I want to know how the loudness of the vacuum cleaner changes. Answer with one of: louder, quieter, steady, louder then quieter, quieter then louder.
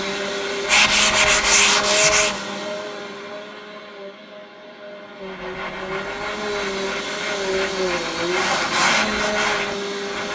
quieter then louder.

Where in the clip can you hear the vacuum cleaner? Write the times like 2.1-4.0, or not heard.
0.0-10.2.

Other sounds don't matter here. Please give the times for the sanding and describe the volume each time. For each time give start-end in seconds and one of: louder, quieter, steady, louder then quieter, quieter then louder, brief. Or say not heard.
0.0-2.4 brief
5.2-10.2 louder.